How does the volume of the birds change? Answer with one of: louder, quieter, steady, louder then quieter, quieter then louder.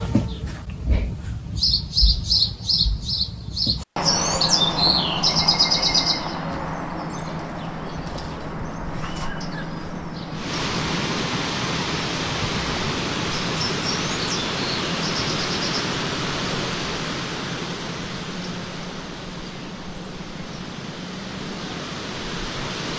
quieter.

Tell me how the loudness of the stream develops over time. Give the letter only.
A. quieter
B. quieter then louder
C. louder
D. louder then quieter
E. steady
A.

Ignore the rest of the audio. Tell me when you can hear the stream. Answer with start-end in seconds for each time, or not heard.
10.3-22.9.